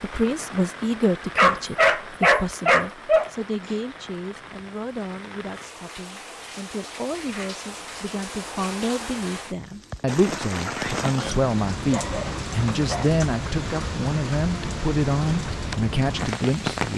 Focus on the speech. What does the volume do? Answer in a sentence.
The loudness of the speech goes down, then up.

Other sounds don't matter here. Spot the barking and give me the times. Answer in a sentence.
The barking can be heard from 1.4 to 3.8 s and from 11.9 to 13.2 s.